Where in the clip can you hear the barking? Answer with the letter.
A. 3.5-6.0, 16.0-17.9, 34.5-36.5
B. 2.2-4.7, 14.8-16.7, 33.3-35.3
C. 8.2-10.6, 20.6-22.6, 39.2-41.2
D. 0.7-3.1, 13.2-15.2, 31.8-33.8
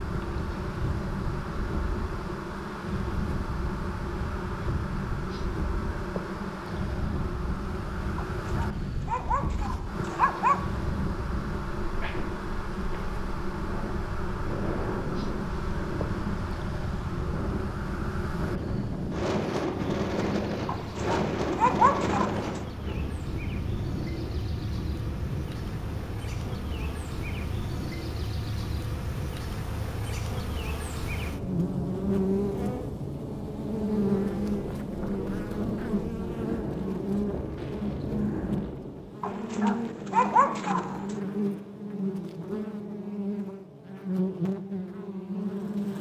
C.